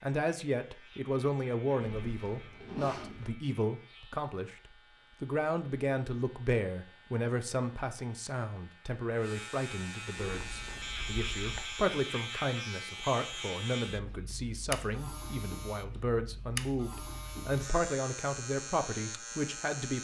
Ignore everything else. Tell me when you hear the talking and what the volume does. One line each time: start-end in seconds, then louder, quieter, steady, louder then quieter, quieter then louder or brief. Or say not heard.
0.0-20.0 steady.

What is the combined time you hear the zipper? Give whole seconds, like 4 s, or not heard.
3 s.